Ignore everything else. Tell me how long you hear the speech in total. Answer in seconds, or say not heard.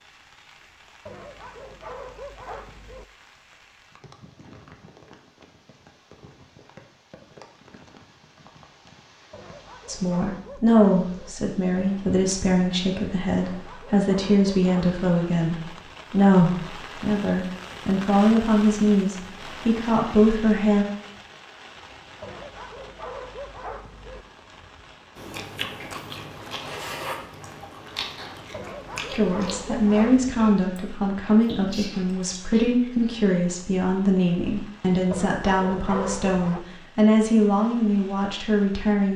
21 s.